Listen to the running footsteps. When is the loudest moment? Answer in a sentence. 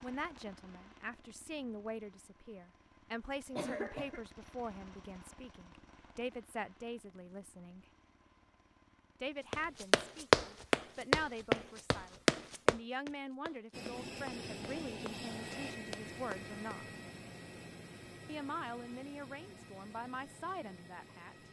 The volume of the running footsteps peaks at 10 seconds.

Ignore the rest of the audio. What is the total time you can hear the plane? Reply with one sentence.
You can hear the plane for 17 seconds altogether.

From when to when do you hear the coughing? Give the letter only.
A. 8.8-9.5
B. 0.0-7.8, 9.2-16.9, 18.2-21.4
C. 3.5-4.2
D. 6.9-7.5
C.